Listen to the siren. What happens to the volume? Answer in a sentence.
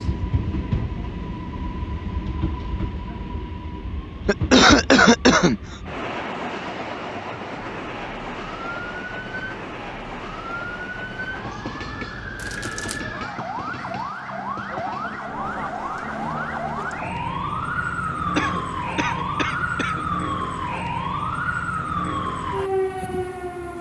The loudness of the siren goes up.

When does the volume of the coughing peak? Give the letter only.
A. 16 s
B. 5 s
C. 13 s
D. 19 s
B.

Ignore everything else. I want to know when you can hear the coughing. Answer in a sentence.
The coughing can be heard from 4.2 to 5.6 s, from 12.3 to 13.0 s and from 18.4 to 20.1 s.